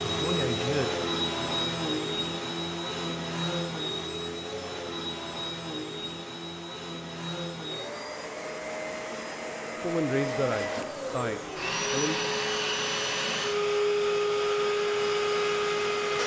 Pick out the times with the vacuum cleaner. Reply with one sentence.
You can hear the vacuum cleaner from 0.0 to 16.2 s.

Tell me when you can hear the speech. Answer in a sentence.
The speech can be heard from 0.0 to 1.8 s and from 9.8 to 12.3 s.